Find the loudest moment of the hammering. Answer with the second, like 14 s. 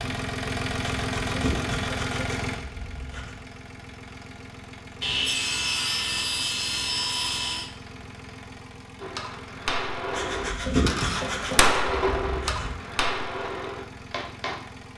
12 s.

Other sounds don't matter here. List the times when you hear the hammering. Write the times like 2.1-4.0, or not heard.
9.0-14.6.